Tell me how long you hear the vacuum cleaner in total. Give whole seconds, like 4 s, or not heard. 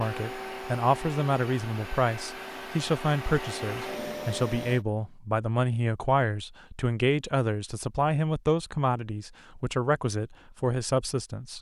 5 s.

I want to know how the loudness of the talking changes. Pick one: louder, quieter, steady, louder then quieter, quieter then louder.
steady.